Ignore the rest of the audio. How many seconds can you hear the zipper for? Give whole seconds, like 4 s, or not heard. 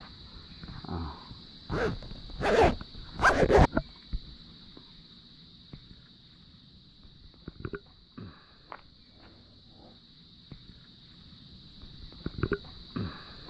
2 s.